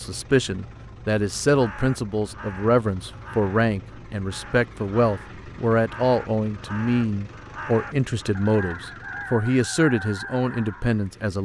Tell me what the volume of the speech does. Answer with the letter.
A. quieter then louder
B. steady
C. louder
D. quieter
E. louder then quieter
B.